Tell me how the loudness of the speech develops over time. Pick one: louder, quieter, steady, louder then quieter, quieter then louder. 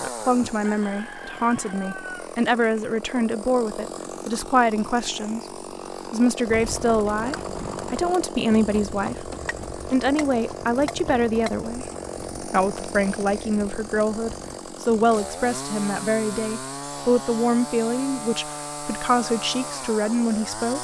steady.